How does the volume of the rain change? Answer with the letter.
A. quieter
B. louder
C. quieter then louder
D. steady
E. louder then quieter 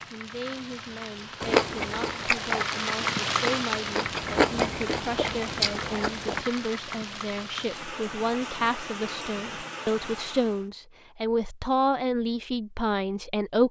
E.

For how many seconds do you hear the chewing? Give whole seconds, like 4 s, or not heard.
5 s.